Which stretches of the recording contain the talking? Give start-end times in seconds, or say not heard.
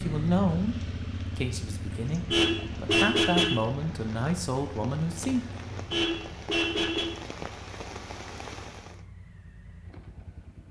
0.0-5.4.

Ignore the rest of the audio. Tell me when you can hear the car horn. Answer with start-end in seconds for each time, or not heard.
1.9-3.6, 5.7-7.1.